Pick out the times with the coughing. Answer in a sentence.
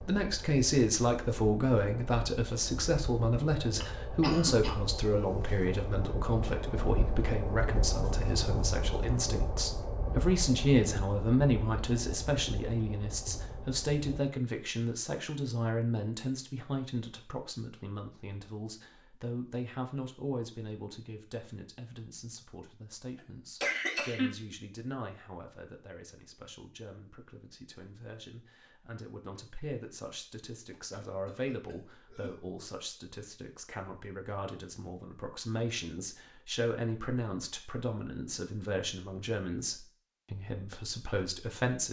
You can hear the coughing from 3.8 to 4.8 s, from 23.1 to 24.3 s and from 30.7 to 32.4 s.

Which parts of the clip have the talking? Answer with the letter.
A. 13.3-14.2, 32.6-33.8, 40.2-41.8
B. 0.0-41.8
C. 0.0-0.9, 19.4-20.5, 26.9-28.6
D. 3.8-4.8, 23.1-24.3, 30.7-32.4
B.